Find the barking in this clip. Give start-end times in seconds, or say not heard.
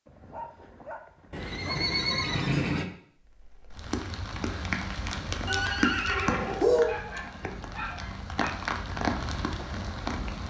0.1-1.9, 6.8-8.6.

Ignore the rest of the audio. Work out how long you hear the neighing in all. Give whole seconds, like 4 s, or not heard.
3 s.